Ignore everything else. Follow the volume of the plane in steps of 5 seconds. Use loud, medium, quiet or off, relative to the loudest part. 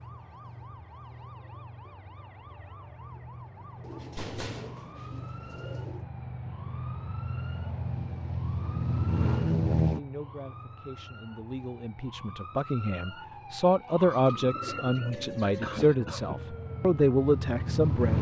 quiet, loud, quiet, loud.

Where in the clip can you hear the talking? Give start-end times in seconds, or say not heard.
9.9-18.1.